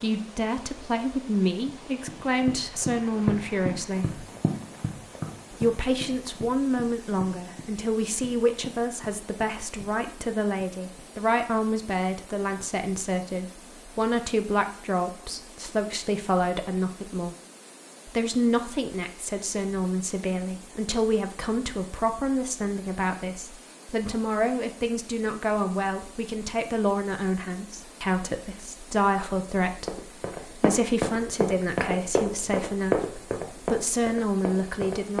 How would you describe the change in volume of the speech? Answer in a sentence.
The volume of the speech stays about the same.